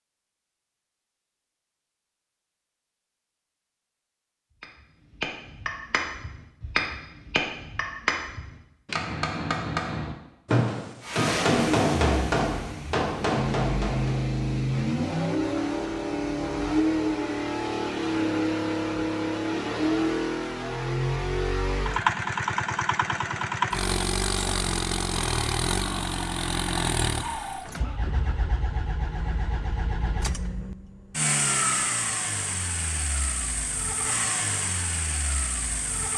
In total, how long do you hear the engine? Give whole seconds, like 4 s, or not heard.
25 s.